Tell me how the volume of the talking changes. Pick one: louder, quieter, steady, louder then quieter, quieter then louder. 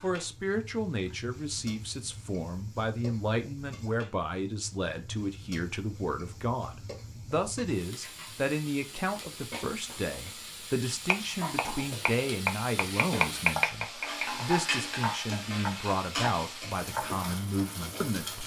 steady.